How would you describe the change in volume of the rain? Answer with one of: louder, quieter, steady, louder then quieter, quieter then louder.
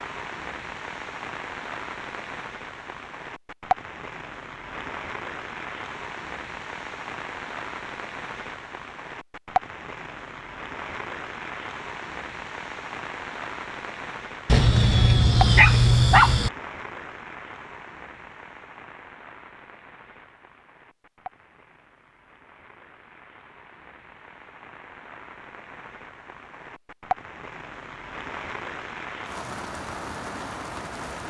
quieter then louder.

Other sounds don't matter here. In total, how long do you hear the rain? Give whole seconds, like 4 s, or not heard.
31 s.